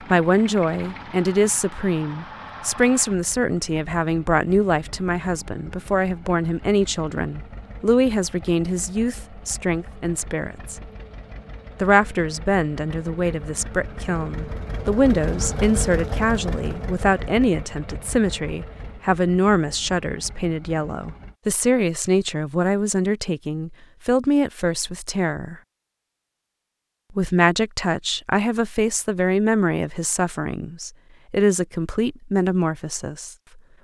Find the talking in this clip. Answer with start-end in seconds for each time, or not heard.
0.1-10.8, 11.8-25.6, 27.1-33.4.